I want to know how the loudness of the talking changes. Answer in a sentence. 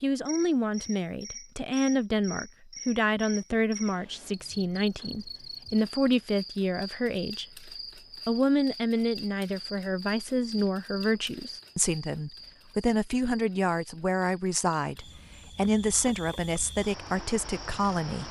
The volume of the talking stays about the same.